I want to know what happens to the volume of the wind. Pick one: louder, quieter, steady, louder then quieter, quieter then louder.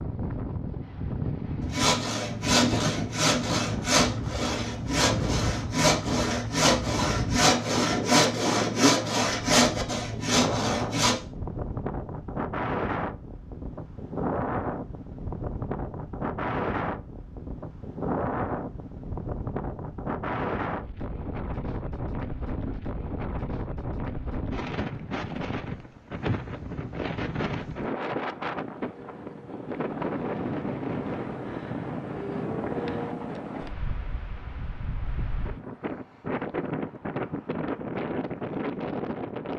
steady.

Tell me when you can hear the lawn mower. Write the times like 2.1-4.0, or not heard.
not heard.